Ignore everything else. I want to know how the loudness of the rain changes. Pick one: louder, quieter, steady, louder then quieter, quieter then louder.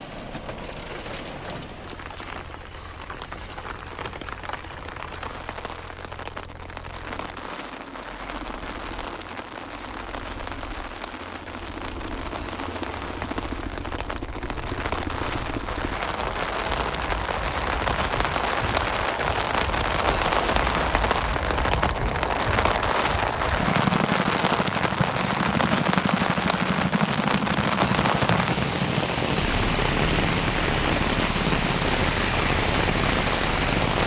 louder.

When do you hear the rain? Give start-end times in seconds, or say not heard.
0.0-34.0.